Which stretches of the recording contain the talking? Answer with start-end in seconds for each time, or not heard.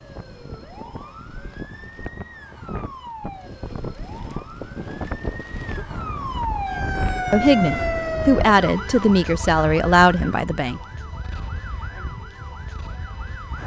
7.3-10.8.